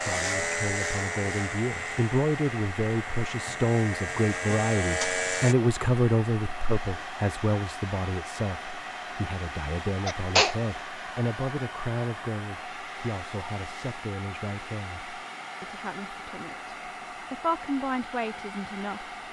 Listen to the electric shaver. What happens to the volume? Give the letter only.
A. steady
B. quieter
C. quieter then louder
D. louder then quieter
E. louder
C.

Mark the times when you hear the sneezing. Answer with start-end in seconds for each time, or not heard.
10.1-10.6.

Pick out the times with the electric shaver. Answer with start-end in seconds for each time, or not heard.
0.0-5.5.